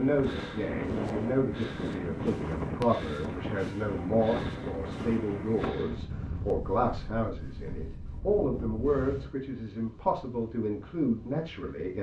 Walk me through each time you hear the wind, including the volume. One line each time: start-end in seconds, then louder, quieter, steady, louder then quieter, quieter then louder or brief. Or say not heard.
0.0-11.9 quieter.